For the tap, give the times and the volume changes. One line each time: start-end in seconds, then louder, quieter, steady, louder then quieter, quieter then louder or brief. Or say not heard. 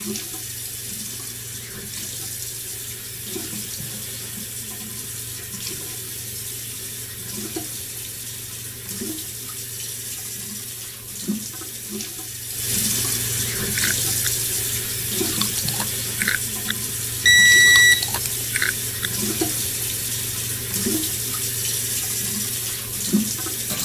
0.0-23.8 louder.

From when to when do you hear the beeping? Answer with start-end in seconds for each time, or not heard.
17.2-18.4.